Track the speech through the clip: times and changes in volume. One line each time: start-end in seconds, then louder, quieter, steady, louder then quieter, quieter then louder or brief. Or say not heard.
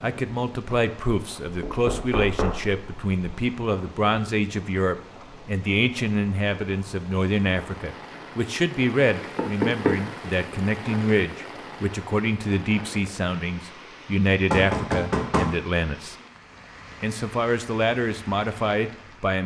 0.0-16.1 steady
17.0-19.4 brief.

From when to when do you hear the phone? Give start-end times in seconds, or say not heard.
not heard.